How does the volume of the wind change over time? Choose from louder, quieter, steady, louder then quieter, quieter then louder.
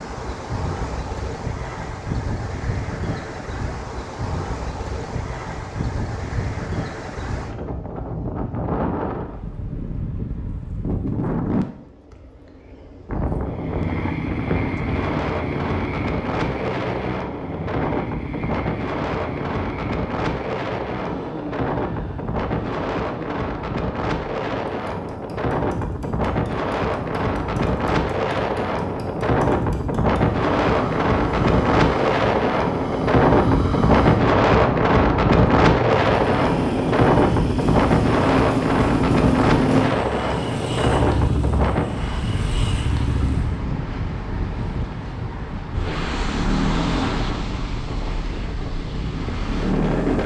louder then quieter.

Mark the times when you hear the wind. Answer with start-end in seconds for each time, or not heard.
0.0-50.2.